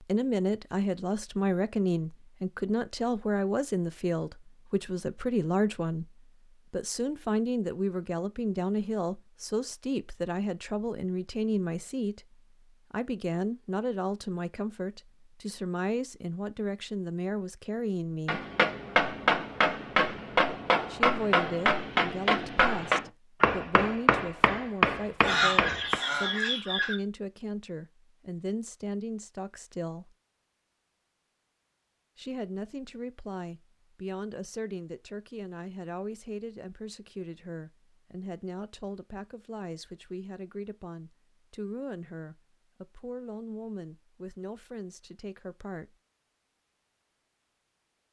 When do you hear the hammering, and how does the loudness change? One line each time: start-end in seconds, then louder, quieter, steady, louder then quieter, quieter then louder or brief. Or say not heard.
18.2-26.0 steady.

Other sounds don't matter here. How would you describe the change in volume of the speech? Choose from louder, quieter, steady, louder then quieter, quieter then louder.
quieter.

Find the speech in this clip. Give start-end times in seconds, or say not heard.
0.0-18.4, 20.9-30.1, 32.1-46.0.